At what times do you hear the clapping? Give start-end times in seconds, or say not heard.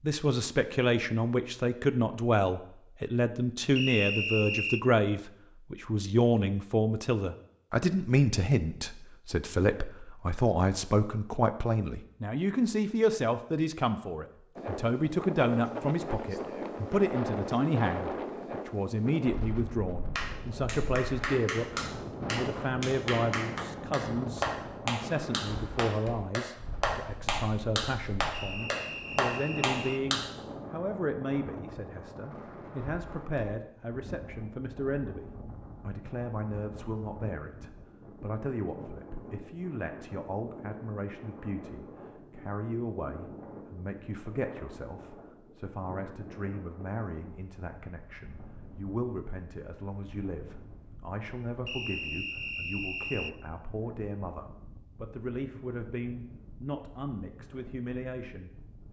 20.1-30.2.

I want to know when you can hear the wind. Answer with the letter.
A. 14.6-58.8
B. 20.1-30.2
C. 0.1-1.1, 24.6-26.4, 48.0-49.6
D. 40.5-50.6
A.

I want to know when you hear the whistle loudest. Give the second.
4 s.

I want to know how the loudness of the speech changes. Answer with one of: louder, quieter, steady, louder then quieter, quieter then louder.
quieter.